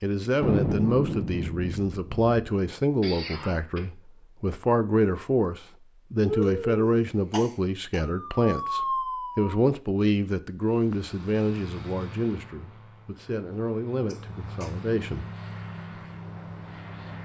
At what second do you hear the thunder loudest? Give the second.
1 s.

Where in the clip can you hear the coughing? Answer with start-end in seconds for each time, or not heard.
3.0-3.9, 6.2-8.0, 14.1-14.8.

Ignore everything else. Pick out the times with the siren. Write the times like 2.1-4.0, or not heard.
8.1-9.7.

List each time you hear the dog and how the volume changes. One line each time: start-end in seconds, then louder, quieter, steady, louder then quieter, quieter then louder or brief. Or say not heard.
not heard.